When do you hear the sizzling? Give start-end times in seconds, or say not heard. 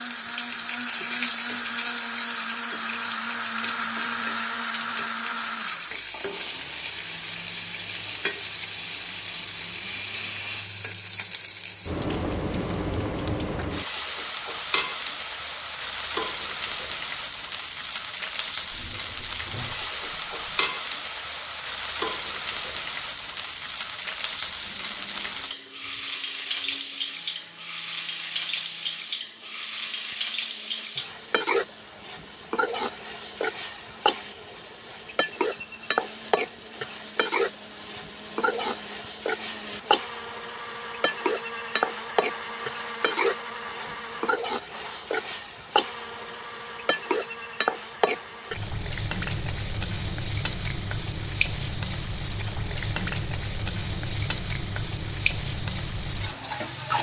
0.0-56.9.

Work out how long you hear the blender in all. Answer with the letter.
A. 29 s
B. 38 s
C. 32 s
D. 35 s
D.